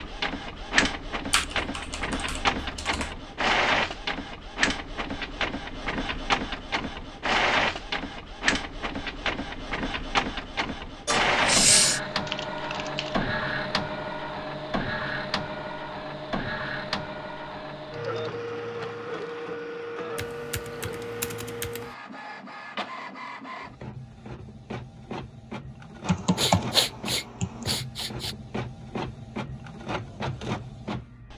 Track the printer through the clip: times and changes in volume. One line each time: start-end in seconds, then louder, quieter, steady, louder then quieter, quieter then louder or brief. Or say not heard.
0.0-31.3 quieter.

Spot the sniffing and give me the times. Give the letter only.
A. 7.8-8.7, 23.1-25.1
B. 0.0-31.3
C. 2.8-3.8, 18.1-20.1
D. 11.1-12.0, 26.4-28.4
D.